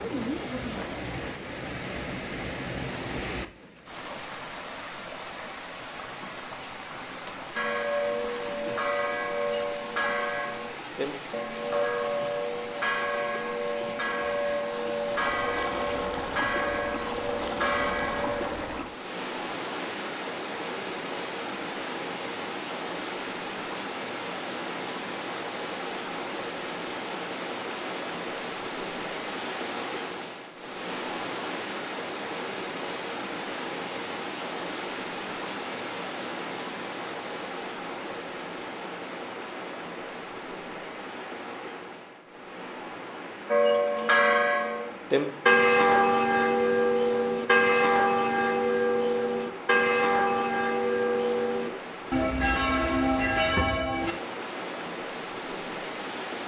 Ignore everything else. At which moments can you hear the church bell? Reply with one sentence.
You can hear the church bell from 7.5 to 18.5 s and from 43.5 to 54.1 s.